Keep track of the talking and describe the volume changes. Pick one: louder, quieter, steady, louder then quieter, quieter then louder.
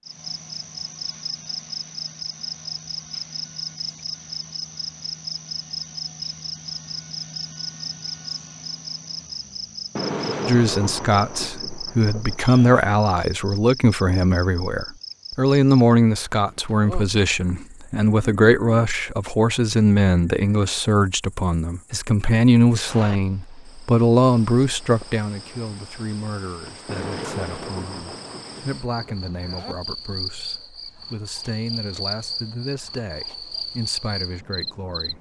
quieter.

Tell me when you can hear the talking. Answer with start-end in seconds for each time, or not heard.
10.4-35.1.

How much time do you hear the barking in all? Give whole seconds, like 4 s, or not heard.
not heard.